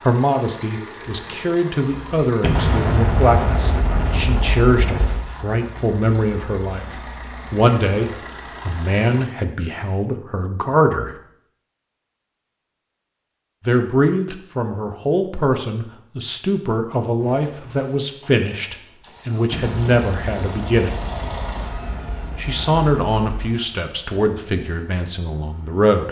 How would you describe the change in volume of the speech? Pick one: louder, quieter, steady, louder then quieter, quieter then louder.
steady.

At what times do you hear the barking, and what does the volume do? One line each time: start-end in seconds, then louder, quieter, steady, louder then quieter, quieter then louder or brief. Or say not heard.
not heard.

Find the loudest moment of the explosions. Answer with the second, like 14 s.
3 s.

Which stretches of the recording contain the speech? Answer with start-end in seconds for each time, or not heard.
0.1-11.1, 13.7-20.9, 22.4-26.0.